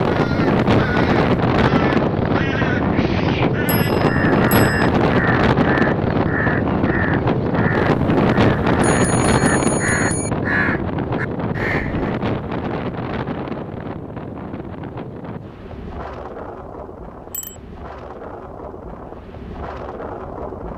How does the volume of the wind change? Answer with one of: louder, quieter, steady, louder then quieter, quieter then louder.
quieter.